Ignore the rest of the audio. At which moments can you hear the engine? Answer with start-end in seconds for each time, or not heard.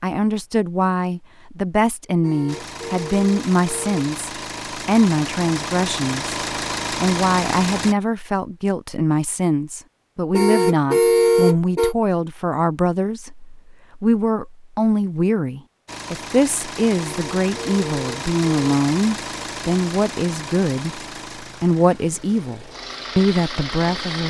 2.5-8.0, 15.8-24.2.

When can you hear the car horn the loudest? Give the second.
11 s.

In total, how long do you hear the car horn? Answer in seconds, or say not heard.
5 s.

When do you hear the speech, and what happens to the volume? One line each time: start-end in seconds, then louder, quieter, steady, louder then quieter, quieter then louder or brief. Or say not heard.
0.0-24.2 steady.